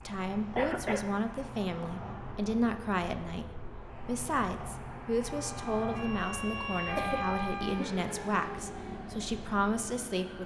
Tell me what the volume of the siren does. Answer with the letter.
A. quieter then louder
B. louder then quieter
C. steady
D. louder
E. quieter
B.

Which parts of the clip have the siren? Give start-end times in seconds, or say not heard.
5.2-10.4.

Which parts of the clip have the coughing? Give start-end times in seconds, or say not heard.
0.6-1.1, 7.0-8.0.